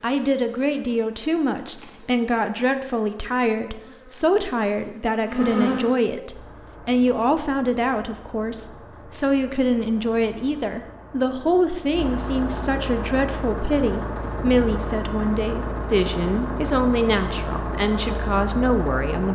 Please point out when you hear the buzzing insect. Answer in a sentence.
The buzzing insect can be heard from 0.0 to 6.0 s.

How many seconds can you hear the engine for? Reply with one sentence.
The engine can be heard for 13 seconds in total.